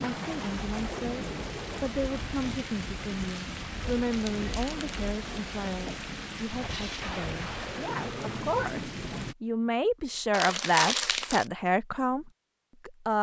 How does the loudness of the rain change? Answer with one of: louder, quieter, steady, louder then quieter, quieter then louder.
steady.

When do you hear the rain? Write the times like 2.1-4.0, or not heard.
0.0-9.3.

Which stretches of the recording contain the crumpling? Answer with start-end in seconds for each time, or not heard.
4.1-4.9, 10.3-11.4.